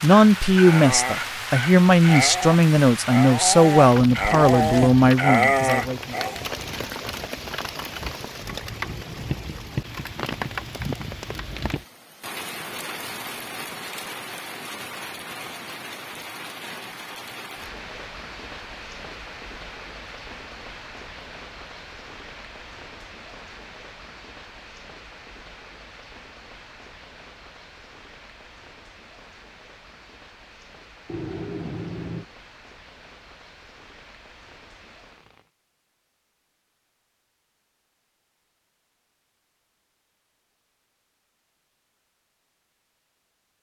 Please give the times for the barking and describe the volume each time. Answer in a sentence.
The barking can be heard from 0.0 to 6.5 s, getting louder.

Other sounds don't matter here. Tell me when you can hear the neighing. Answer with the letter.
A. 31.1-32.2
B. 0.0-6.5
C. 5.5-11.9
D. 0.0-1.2
A.